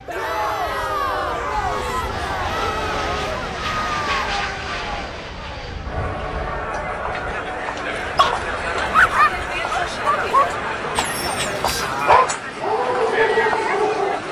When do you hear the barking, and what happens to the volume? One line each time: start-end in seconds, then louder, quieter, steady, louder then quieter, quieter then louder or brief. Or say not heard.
8.0-14.2 quieter then louder.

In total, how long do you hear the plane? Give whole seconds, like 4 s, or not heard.
14 s.